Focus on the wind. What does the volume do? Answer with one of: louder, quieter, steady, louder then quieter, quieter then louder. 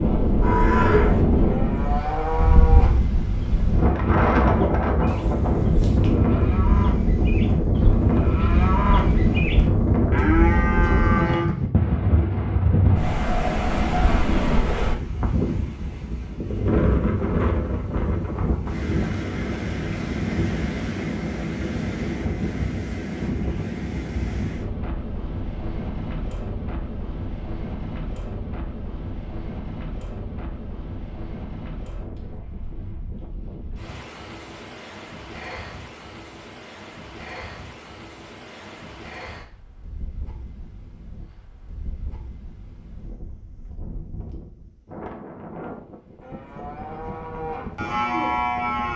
quieter.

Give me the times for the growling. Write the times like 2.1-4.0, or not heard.
5.0-6.2.